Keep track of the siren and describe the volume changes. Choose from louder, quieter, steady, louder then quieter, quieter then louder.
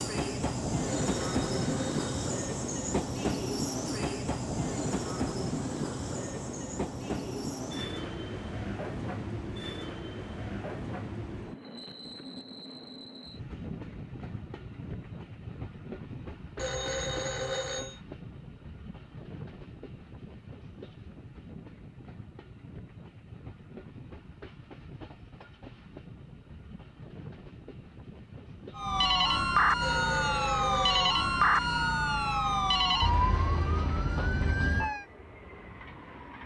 quieter.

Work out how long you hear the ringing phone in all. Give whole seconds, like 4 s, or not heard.
4 s.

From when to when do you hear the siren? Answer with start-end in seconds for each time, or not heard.
28.8-35.0.